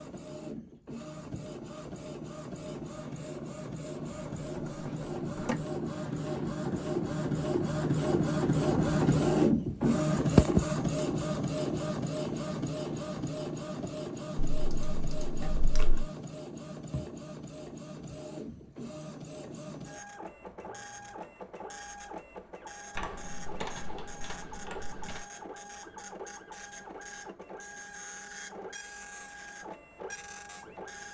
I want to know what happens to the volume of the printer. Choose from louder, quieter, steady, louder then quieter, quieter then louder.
louder then quieter.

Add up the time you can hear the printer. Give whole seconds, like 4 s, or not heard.
31 s.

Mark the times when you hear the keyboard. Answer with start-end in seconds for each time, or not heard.
4.5-5.5, 14.5-16.1, 22.9-25.2.